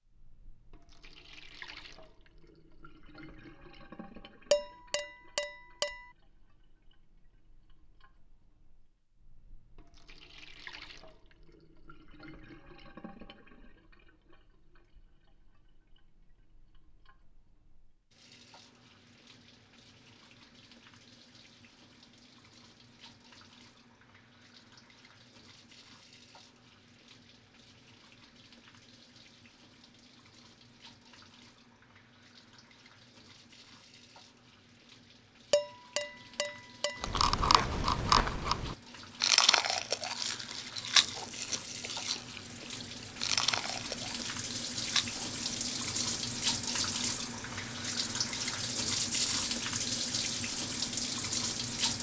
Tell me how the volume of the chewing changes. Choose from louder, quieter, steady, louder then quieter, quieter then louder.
quieter.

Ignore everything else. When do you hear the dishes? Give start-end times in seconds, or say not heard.
4.5-6.0, 35.5-37.0.